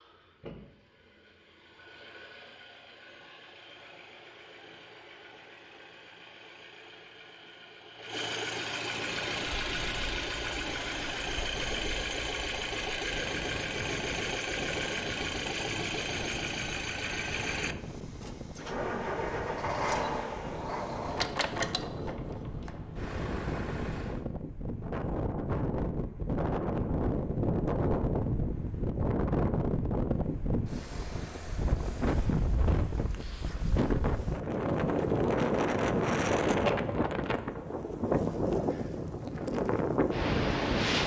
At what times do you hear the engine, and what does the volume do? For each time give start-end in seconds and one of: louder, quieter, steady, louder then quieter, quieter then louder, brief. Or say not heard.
0.0-24.2 louder.